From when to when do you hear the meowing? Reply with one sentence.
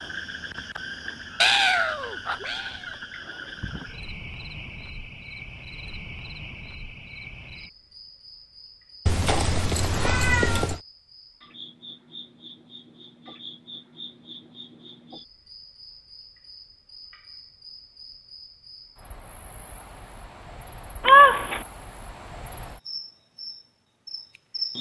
The meowing can be heard from 1.4 to 2.8 s, from 9.1 to 10.8 s and from 21.1 to 21.6 s.